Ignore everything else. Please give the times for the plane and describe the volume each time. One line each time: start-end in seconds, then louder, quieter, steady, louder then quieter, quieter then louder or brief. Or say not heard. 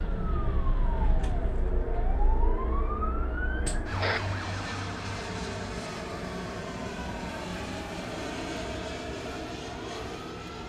0.0-10.6 steady.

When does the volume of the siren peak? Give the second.
4 s.